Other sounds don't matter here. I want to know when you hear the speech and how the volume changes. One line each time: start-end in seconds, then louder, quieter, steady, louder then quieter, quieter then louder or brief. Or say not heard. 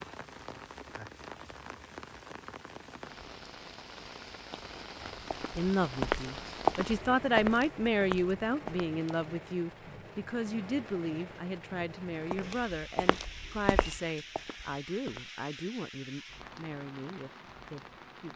5.5-18.3 quieter.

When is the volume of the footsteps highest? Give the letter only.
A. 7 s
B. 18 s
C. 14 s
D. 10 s
A.